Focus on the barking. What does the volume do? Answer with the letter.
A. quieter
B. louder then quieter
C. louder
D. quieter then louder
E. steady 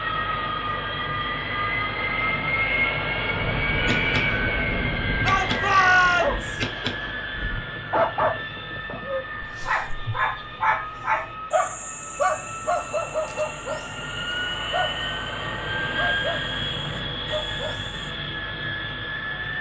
A.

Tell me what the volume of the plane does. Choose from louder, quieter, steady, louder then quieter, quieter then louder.
quieter then louder.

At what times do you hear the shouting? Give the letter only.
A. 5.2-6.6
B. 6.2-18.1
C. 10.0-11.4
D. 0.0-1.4
A.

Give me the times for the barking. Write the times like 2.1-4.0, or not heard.
6.2-18.1.